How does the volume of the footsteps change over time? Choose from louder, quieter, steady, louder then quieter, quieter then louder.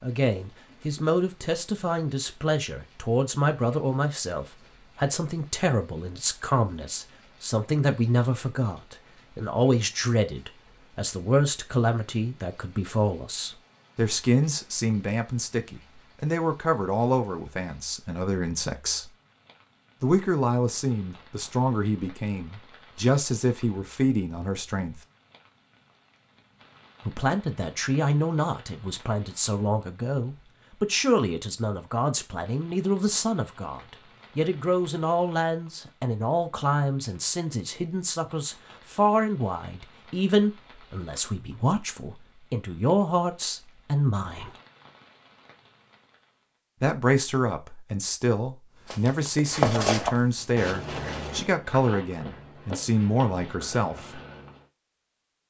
quieter.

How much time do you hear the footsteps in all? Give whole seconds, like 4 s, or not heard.
6 s.